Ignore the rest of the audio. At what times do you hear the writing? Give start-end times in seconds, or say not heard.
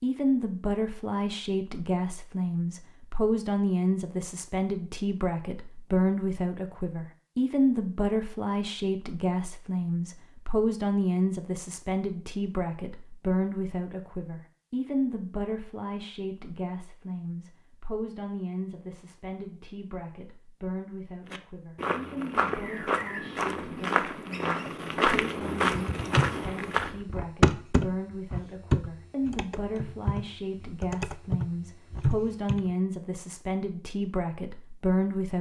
not heard.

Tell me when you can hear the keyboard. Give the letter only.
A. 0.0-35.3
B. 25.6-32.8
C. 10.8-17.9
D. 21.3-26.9
B.